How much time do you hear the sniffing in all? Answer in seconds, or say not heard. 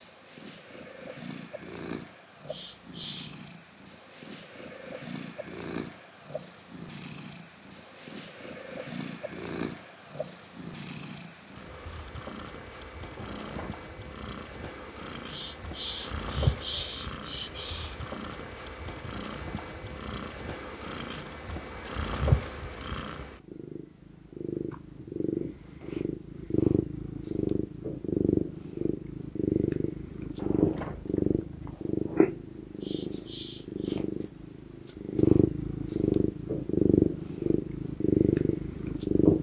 5 s.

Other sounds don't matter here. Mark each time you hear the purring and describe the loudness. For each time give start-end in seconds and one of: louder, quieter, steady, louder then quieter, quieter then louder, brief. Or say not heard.
0.0-39.3 louder.